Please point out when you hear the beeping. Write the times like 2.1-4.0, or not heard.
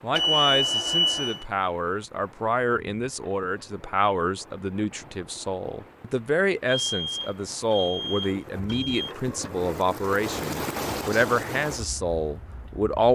0.1-1.4, 6.7-9.2.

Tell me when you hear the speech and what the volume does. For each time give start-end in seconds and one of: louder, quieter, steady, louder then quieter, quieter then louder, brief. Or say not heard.
0.0-13.0 steady.